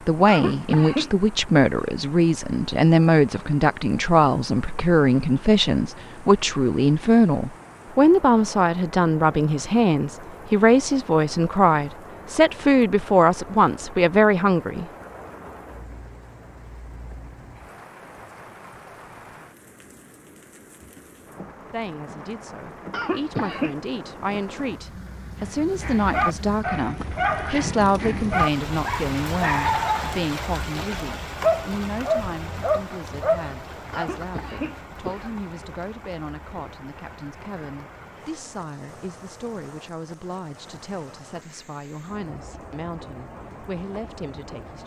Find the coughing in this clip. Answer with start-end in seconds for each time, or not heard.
0.2-1.1, 22.9-23.8, 33.9-35.3.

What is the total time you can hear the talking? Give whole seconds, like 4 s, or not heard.
38 s.